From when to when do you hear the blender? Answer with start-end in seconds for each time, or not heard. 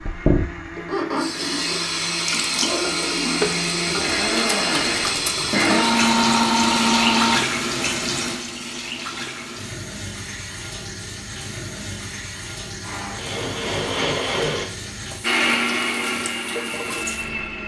0.0-7.5, 12.8-17.6.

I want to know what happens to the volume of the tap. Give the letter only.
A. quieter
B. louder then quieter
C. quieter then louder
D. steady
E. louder
A.